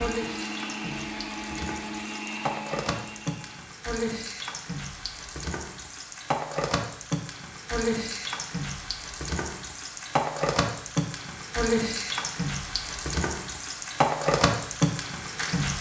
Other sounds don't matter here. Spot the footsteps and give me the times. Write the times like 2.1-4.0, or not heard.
not heard.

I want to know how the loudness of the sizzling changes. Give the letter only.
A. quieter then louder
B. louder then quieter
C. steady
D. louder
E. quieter
D.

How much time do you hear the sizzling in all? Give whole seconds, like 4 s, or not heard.
16 s.